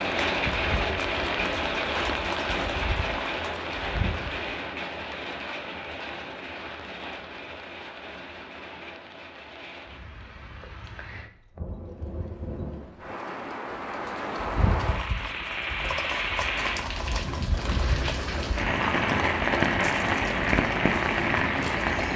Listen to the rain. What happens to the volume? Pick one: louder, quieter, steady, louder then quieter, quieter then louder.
quieter then louder.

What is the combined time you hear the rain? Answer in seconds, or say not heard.
22 s.